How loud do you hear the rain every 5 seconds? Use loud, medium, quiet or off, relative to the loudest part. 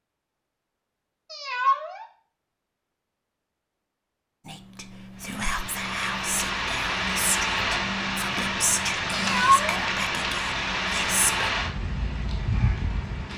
off, loud, loud.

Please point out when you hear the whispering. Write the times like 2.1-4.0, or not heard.
4.5-11.5.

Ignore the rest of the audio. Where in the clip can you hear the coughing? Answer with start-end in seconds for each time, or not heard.
not heard.